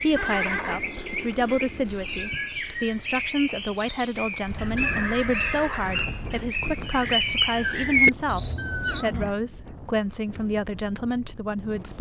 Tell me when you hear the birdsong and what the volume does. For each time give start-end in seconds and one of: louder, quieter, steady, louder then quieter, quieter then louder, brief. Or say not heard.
0.0-9.1 louder.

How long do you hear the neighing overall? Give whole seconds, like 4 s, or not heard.
4 s.